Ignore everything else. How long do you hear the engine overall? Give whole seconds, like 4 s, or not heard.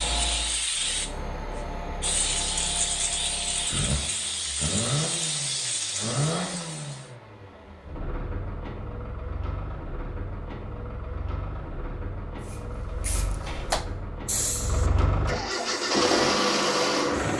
17 s.